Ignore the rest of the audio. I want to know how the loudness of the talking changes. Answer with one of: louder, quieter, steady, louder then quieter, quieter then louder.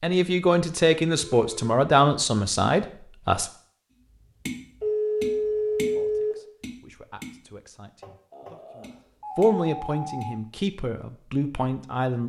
quieter then louder.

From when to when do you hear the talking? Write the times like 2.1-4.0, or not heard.
0.0-3.5, 6.0-12.2.